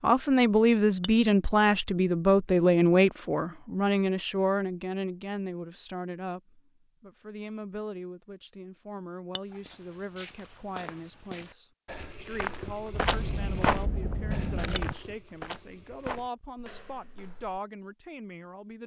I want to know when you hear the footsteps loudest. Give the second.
14 s.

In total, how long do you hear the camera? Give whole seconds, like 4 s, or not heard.
2 s.